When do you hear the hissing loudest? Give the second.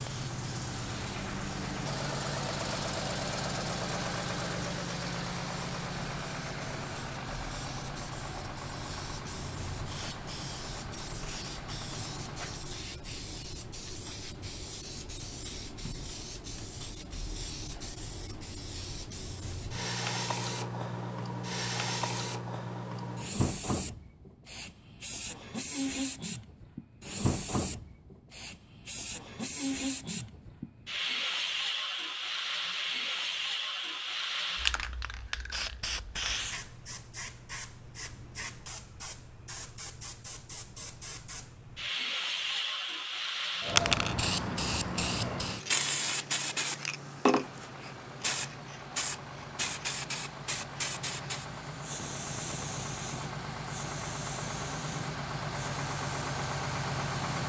44 s.